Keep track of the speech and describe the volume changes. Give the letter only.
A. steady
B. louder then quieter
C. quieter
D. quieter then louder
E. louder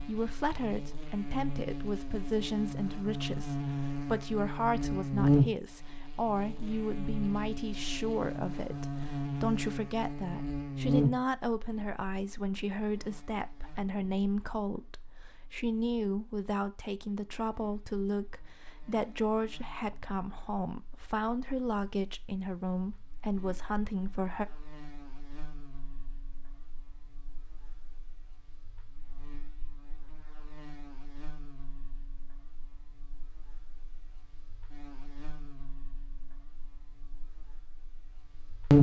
A.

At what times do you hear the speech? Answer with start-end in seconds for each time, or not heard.
0.0-24.4.